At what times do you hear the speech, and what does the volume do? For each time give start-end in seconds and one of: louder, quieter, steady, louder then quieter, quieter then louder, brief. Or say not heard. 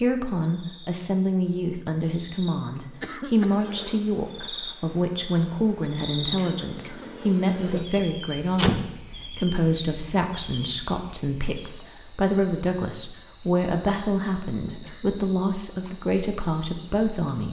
0.0-17.4 steady.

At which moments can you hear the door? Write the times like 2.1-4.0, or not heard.
8.0-8.8.